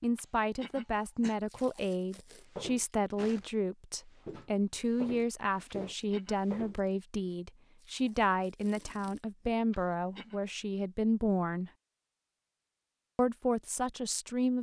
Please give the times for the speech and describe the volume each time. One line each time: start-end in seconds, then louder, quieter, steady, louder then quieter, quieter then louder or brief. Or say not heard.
0.0-11.7 steady
13.2-14.5 brief.